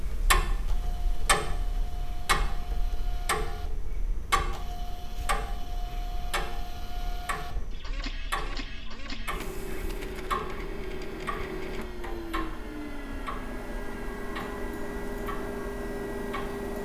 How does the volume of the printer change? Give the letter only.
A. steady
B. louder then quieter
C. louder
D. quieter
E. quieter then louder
C.